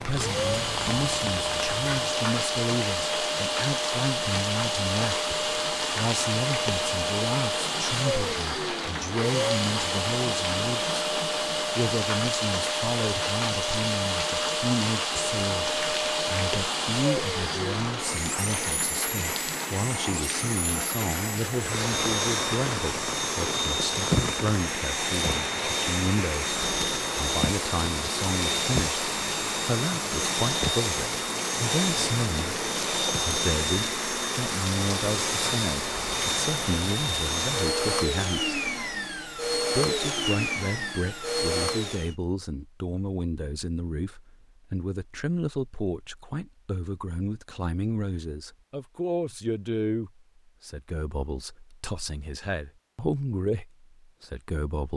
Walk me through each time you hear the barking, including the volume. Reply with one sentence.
You can't hear the barking here.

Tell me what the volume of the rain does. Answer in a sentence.
The volume of the rain stays about the same.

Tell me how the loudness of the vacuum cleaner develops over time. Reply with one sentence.
The volume of the vacuum cleaner stays about the same.